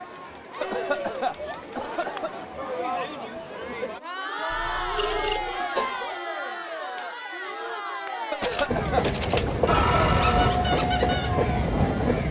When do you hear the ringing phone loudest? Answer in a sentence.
The volume of the ringing phone peaks at 10 seconds.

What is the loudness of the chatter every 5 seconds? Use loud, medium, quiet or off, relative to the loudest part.
loud, loud, medium.